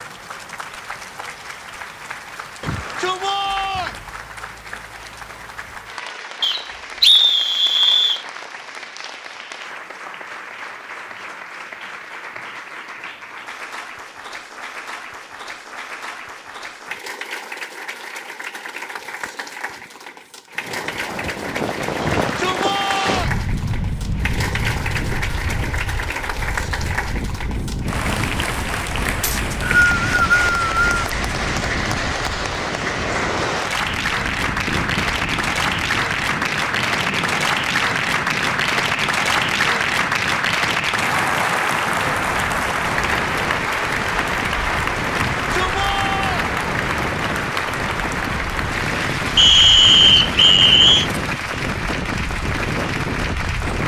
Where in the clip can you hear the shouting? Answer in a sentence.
You can hear the shouting from 2.6 to 4.0 s, from 22.0 to 23.4 s and from 45.1 to 46.5 s.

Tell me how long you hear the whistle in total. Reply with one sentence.
The whistle can be heard for 5 seconds in total.